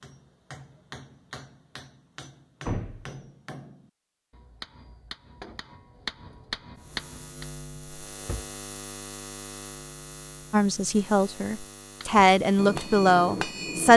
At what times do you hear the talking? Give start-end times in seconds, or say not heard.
10.5-13.9.